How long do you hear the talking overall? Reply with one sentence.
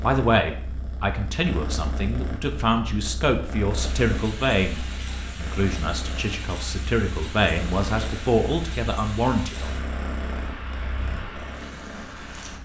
You can hear the talking for 10 seconds altogether.